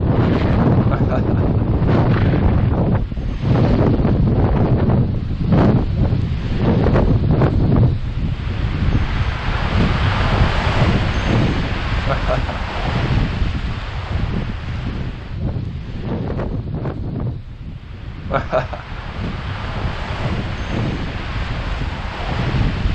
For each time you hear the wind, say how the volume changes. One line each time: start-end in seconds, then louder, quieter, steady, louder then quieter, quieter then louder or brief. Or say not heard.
0.0-22.9 quieter.